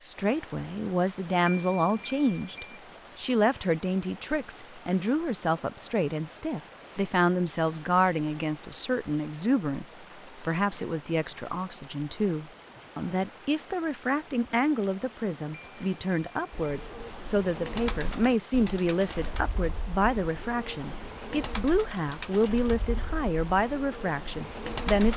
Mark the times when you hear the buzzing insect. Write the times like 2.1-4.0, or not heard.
not heard.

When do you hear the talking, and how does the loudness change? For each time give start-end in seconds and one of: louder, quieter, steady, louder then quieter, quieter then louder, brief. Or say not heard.
0.0-25.1 steady.